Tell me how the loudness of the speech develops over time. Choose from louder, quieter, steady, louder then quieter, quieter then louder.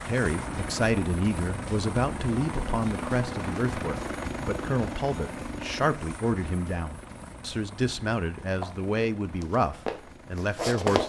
steady.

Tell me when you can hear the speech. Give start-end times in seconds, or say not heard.
0.0-11.0.